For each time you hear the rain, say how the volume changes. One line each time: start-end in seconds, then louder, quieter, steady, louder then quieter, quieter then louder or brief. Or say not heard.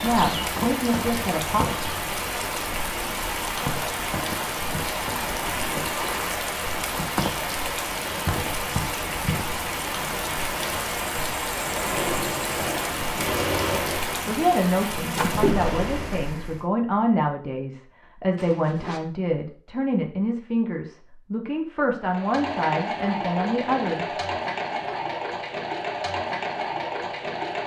0.0-16.6 steady.